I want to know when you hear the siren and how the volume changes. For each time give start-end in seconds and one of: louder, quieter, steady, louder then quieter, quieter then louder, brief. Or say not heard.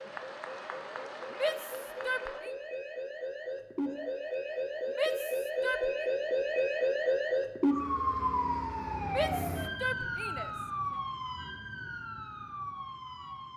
0.0-13.5 louder then quieter.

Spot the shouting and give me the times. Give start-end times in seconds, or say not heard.
1.3-2.5, 5.0-5.9, 9.1-10.5.